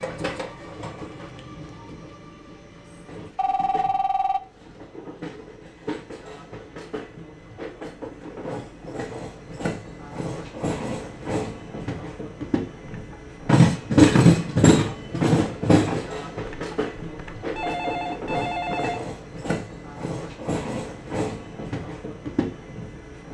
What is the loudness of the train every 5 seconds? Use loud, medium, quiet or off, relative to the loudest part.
quiet, quiet, loud, medium, medium.